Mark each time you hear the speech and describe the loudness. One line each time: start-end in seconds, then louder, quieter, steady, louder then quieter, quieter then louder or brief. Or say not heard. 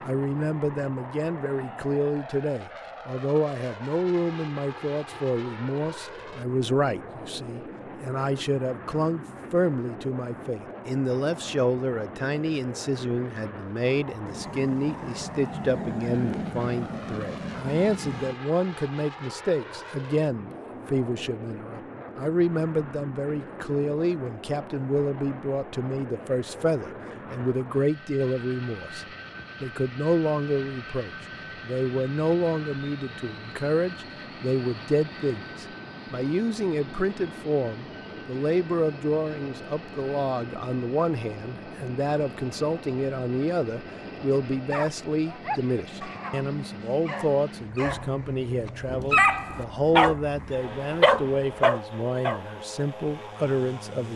0.0-54.1 steady.